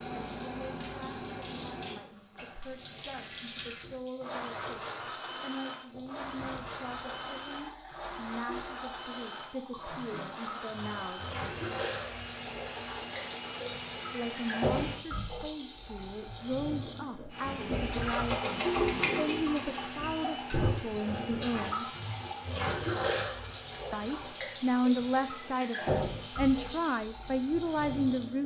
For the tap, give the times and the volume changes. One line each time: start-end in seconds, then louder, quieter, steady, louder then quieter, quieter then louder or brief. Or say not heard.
0.0-28.4 louder.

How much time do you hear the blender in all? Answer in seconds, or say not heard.
21 s.